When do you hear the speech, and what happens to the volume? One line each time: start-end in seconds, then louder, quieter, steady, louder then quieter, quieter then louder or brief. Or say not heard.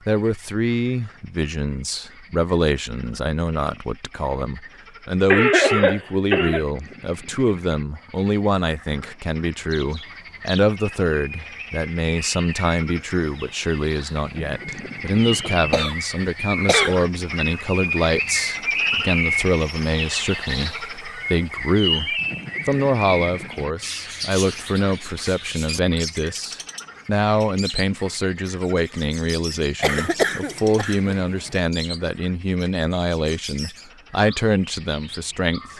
0.1-35.7 steady.